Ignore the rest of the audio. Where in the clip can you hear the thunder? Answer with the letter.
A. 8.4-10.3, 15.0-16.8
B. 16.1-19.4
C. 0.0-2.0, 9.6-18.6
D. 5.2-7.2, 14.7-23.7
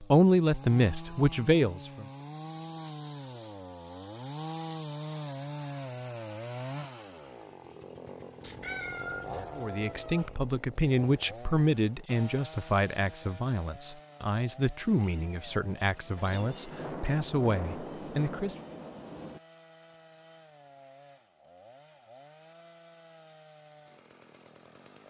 B.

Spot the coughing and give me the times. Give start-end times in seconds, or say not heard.
not heard.